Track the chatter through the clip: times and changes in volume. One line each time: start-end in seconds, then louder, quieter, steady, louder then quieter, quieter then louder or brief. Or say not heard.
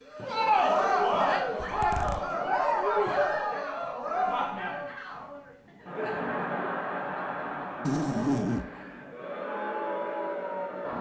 0.1-10.9 quieter.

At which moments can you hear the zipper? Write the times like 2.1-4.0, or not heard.
1.6-2.4, 7.8-8.7.